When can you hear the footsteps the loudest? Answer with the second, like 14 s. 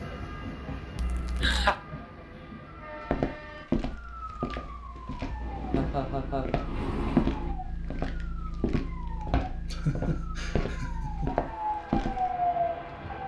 7 s.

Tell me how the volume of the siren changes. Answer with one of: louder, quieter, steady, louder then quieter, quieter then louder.
louder.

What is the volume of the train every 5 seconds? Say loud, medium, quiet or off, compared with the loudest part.
medium, loud, off.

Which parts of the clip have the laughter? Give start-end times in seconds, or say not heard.
0.9-1.8, 5.8-6.5, 9.7-11.5.